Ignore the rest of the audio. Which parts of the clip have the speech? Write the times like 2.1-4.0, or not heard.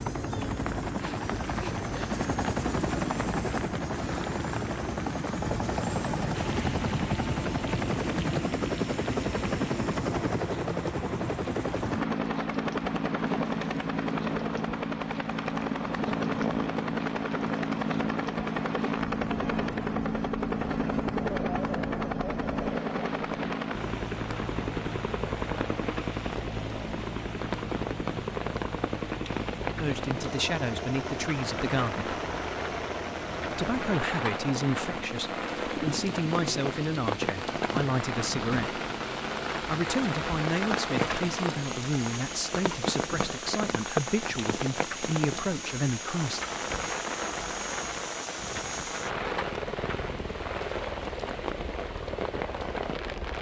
29.8-32.1, 33.5-38.8, 39.6-46.4.